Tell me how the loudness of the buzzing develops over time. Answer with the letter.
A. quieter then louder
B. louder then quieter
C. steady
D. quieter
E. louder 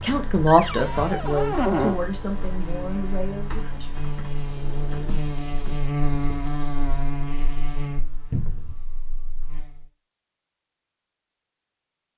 B.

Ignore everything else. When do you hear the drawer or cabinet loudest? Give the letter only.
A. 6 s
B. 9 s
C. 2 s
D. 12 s
C.